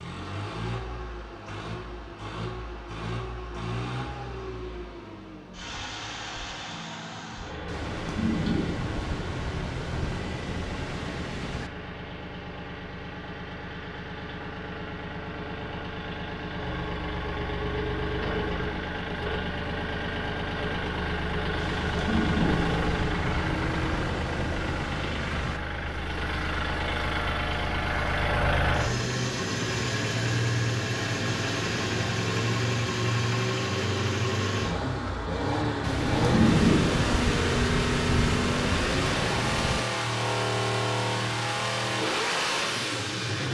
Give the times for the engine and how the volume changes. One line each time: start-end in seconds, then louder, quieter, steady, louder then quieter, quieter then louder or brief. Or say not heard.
0.0-43.4 louder.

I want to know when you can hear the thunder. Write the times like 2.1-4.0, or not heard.
7.7-11.7, 21.6-25.6, 35.8-39.9.